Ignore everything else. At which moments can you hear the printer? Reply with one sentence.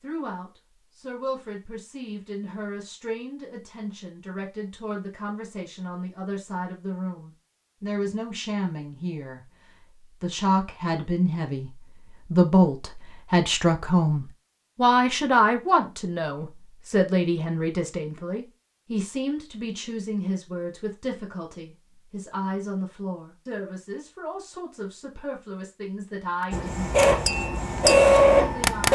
The printer can be heard from 26.5 to 28.8 s.